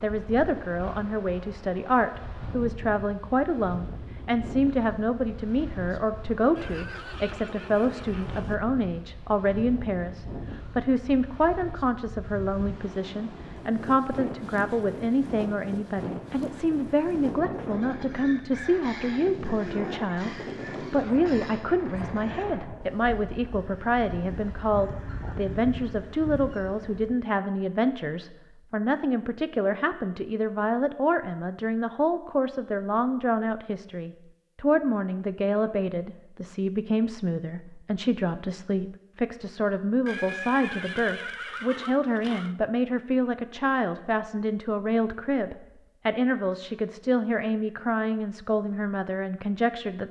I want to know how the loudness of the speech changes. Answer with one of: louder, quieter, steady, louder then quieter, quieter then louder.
steady.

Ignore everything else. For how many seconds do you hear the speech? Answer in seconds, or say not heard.
50 s.